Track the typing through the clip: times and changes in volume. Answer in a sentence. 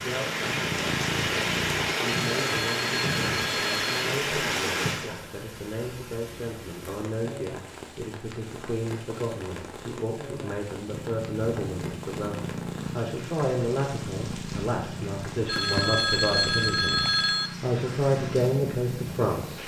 The typing can't be heard in this clip.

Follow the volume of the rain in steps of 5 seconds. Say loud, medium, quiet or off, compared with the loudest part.
loud, quiet, quiet, quiet.